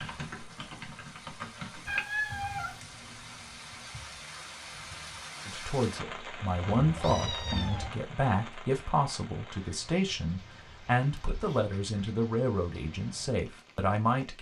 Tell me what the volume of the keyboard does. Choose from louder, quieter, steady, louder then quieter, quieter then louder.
louder then quieter.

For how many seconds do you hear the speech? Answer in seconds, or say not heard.
9 s.